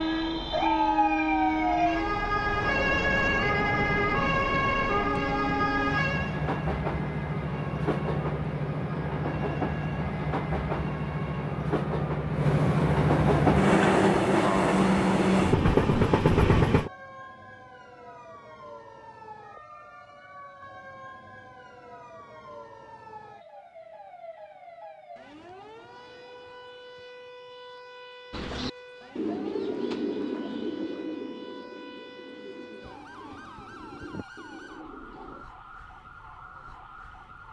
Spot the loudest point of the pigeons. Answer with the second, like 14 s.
30 s.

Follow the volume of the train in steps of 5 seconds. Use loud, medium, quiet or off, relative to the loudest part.
medium, medium, loud, loud, off, off, off, off.